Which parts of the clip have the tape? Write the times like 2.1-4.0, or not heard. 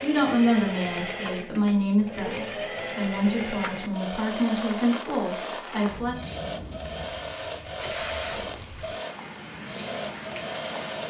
7.8-8.9.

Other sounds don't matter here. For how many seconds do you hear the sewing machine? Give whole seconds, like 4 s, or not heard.
11 s.